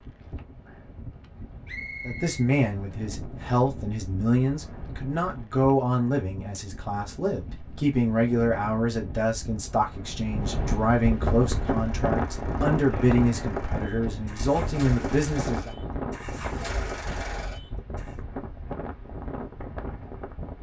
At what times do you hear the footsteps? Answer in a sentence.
The footsteps can't be heard in this clip.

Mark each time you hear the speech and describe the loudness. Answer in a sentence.
You can hear the speech from 2.0 to 15.7 s, at a steady volume.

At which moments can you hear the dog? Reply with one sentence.
The dog can't be heard in this clip.